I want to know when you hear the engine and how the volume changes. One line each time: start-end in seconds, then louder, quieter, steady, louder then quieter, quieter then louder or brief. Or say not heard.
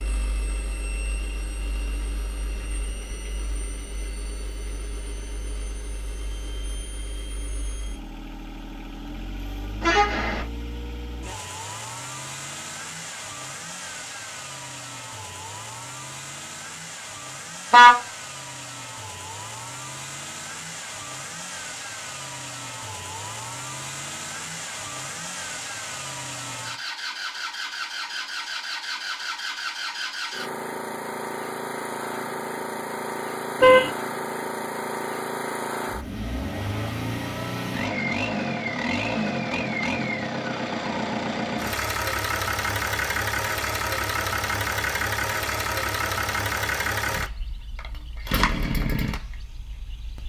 0.0-50.2 louder.